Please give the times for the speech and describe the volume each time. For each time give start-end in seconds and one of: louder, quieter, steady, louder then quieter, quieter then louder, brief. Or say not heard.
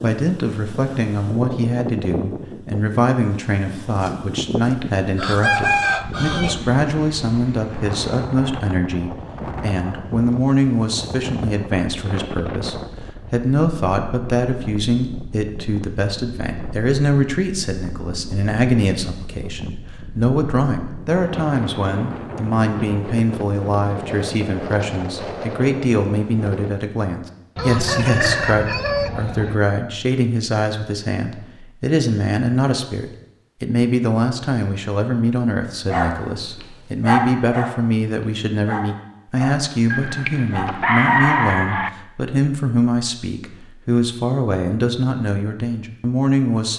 0.0-46.7 steady.